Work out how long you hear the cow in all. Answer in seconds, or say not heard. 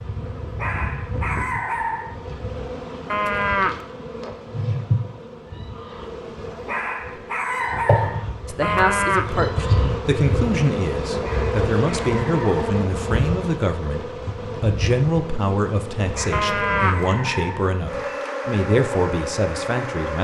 2 s.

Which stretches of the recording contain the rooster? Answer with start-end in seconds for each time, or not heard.
not heard.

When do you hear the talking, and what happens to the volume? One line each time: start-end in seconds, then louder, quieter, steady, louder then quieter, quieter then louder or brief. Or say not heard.
8.4-20.1 steady.